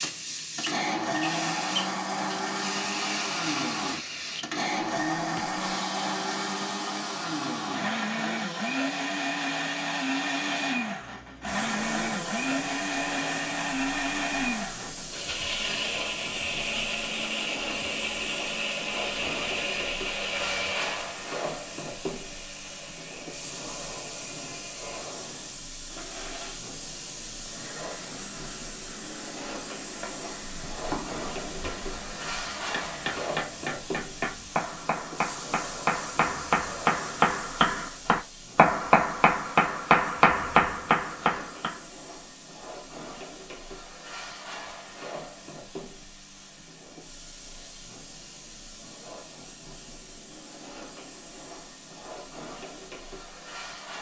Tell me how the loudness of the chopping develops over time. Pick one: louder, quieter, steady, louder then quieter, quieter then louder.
louder.